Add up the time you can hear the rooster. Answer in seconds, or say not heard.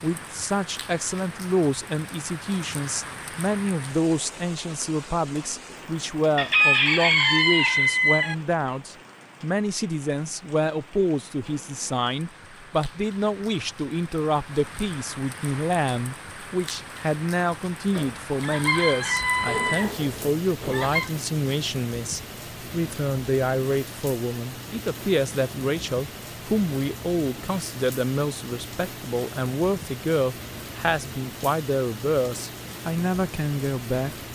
5 s.